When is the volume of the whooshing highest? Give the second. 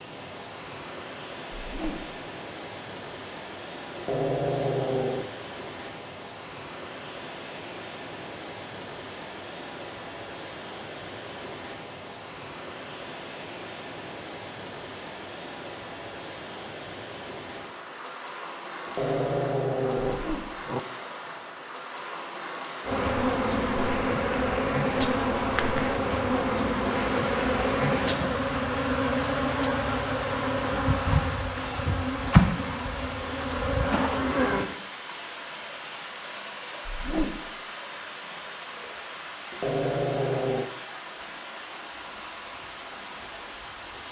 37 s.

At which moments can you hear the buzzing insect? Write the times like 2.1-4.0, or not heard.
22.8-34.7.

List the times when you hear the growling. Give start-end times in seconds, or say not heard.
4.0-5.3, 18.9-20.8, 39.5-40.7.